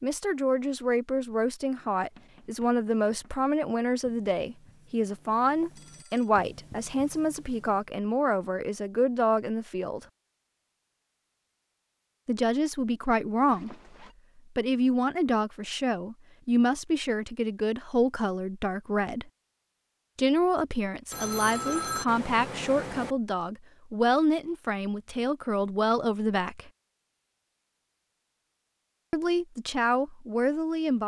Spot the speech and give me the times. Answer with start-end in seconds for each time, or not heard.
0.0-10.1, 12.2-13.8, 14.6-19.2, 20.1-26.7, 29.1-31.0.